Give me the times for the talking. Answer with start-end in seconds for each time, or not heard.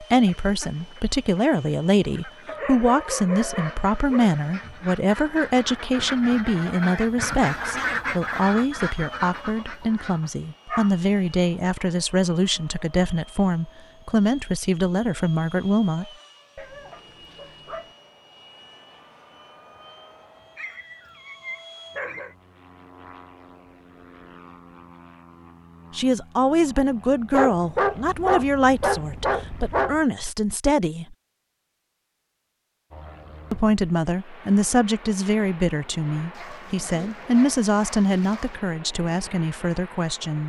0.0-16.1, 25.9-31.1, 33.5-40.4.